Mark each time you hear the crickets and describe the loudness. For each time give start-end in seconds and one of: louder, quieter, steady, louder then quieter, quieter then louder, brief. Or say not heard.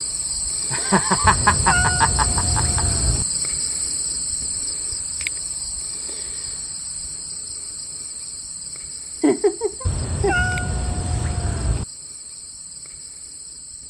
0.0-13.8 quieter.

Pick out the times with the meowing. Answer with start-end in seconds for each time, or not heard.
1.2-3.2, 9.8-11.8.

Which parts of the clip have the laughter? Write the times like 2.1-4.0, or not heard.
0.7-2.8, 9.2-10.3.